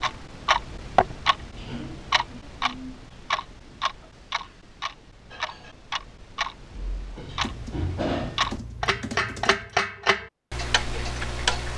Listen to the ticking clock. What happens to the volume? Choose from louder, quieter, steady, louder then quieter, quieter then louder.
quieter then louder.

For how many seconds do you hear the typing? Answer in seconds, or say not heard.
2 s.